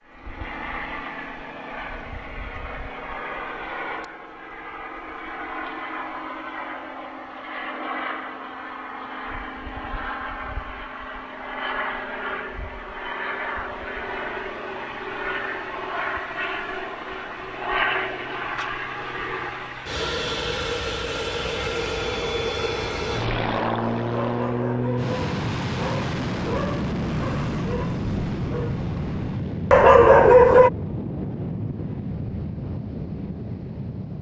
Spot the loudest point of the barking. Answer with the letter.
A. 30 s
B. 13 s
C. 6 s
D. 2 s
A.